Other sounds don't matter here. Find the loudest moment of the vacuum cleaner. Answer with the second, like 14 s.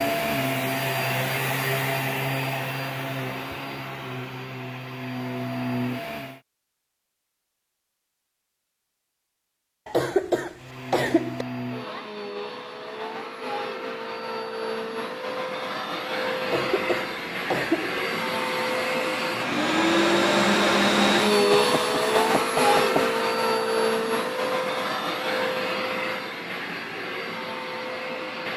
21 s.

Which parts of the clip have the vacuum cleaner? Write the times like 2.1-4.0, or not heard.
0.0-6.4, 10.6-28.5.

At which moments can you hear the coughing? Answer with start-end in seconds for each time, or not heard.
9.8-11.4, 16.4-17.9.